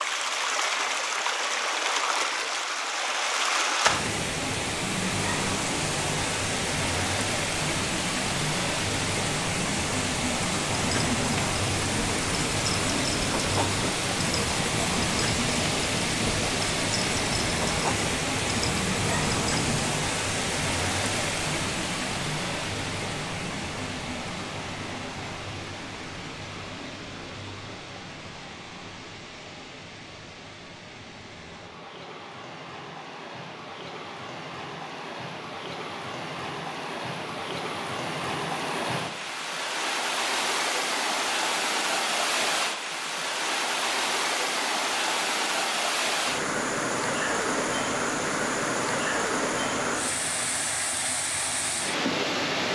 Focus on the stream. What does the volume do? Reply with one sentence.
The loudness of the stream goes down, then up.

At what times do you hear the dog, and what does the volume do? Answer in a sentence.
The dog can be heard from 10.7 to 20.1 s, at a steady volume.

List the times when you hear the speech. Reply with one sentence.
The speech can't be heard in this clip.